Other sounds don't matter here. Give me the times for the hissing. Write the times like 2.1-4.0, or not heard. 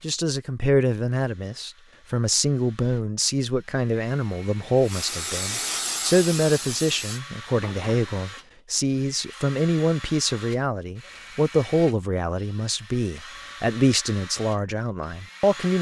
4.8-8.4.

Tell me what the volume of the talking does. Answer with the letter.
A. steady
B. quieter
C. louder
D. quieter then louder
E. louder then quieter
A.